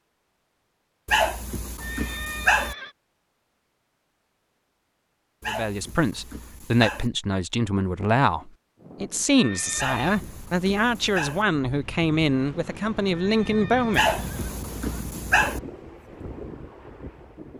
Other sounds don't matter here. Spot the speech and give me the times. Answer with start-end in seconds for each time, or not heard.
5.5-14.2.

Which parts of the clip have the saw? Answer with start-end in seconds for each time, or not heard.
not heard.